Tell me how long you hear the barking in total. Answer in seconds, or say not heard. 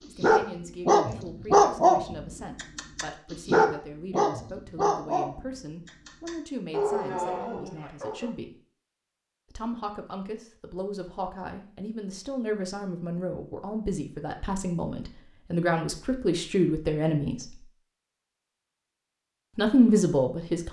8 s.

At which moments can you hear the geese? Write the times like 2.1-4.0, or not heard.
not heard.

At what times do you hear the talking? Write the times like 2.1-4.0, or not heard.
0.1-8.6, 9.5-17.6, 19.6-20.6.